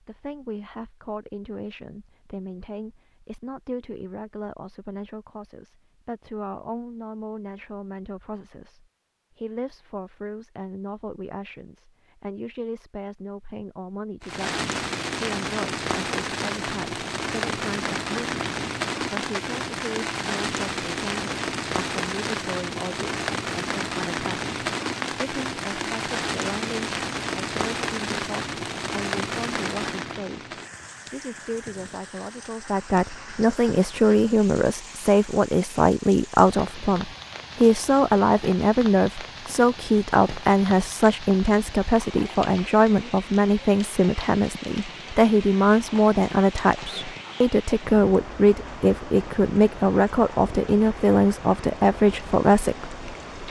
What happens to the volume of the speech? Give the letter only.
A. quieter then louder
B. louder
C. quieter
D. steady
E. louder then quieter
B.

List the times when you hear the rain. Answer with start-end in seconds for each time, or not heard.
14.2-53.4.